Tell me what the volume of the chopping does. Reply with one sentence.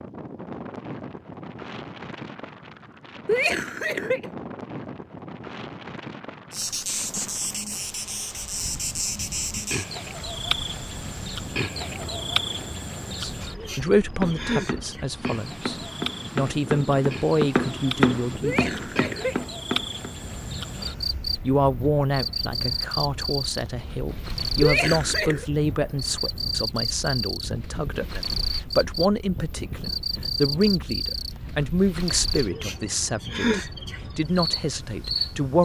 The volume of the chopping goes up, then down.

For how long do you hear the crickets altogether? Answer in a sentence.
You can hear the crickets for 29 seconds altogether.